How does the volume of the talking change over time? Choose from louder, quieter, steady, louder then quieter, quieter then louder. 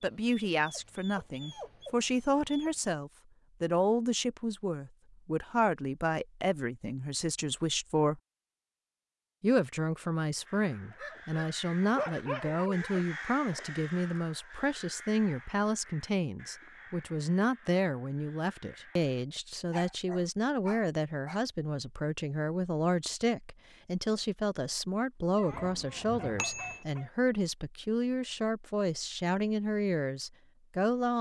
steady.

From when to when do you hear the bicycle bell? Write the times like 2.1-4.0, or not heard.
25.5-26.9.